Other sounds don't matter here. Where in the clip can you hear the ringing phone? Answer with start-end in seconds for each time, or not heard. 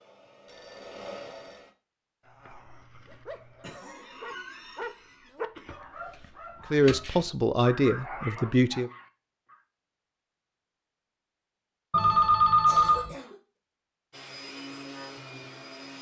0.5-1.6, 11.9-13.1.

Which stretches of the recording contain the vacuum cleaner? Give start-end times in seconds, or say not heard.
0.0-1.8, 14.1-15.9.